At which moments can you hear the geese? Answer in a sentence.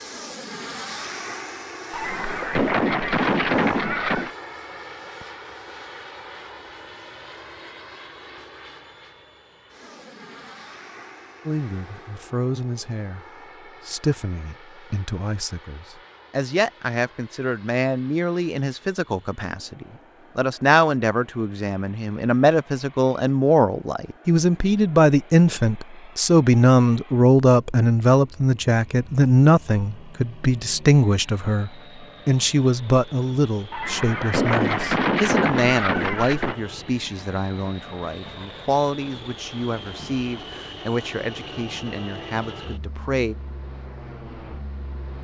The geese can be heard from 1.9 to 4.3 s and from 33.7 to 36.5 s.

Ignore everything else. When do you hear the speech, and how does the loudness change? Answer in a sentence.
You can hear the speech from 11.4 to 43.4 s, getting louder then quieter.